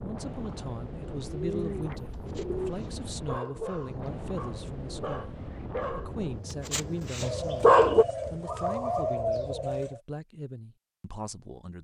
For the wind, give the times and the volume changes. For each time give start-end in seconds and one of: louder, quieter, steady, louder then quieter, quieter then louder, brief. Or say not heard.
0.0-6.5 steady.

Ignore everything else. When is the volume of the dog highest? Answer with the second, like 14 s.
8 s.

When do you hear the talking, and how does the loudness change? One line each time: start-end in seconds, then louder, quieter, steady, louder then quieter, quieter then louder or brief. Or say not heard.
0.0-11.7 steady.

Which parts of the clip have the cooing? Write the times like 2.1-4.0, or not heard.
1.2-2.8, 7.2-10.0.